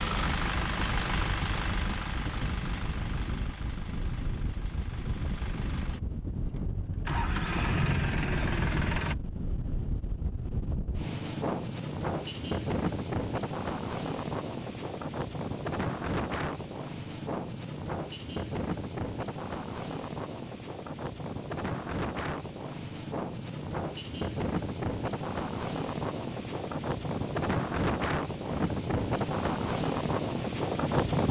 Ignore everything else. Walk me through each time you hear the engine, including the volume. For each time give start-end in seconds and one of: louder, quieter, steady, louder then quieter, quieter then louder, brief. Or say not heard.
0.0-9.2 quieter then louder.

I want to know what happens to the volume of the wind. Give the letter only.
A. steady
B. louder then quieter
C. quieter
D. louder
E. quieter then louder
D.